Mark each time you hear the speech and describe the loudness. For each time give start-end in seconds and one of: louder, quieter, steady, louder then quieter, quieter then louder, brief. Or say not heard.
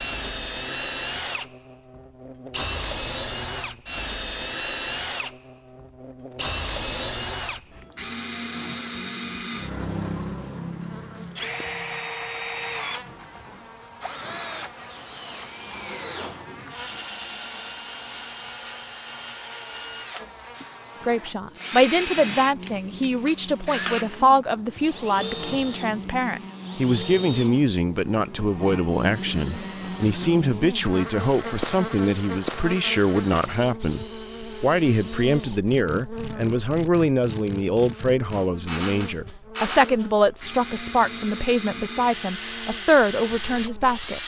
21.0-44.2 steady.